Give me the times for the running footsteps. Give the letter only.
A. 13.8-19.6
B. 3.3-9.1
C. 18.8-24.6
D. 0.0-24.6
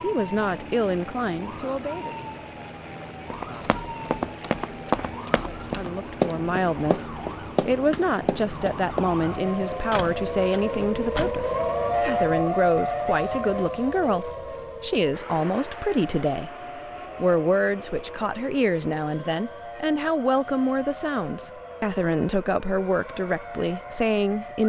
B.